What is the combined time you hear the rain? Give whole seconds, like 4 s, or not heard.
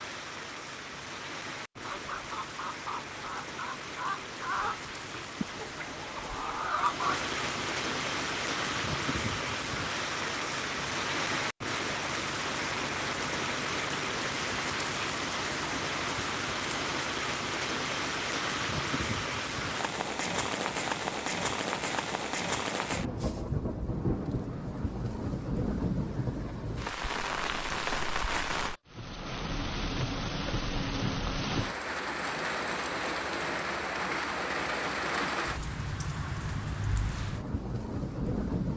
39 s.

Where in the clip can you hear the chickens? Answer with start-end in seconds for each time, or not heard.
1.8-7.2.